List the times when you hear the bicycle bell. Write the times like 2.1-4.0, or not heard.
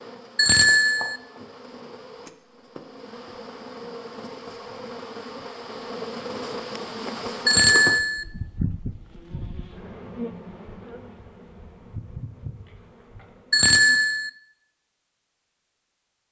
0.3-1.2, 7.5-8.2, 13.5-14.3.